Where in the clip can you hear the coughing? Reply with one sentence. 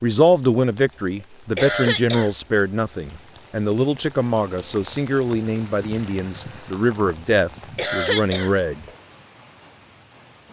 The coughing can be heard from 1.6 to 2.3 s and from 7.8 to 8.6 s.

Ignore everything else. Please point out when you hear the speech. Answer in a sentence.
The speech can be heard from 0.0 to 8.8 s.